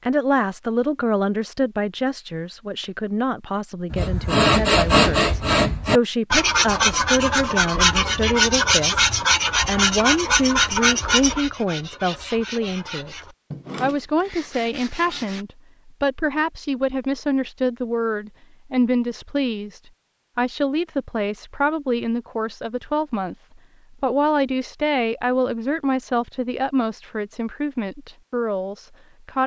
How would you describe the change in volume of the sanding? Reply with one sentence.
The volume of the sanding goes down.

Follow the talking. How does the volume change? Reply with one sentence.
The volume of the talking stays about the same.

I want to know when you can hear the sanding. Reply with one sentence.
The sanding can be heard from 3.9 to 15.4 s.